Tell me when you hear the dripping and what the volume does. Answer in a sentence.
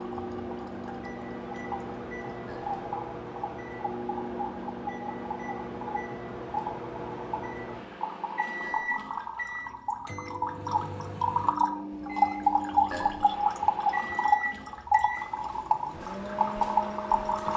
You can hear the dripping from 0.0 to 17.5 s, getting louder.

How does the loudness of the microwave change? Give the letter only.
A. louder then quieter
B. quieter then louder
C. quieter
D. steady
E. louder
D.